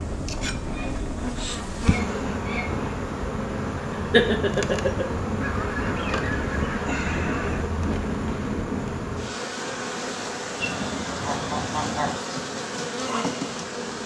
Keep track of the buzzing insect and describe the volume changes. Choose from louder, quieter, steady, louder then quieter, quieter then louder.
steady.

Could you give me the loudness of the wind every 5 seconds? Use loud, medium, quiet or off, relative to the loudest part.
loud, loud, off.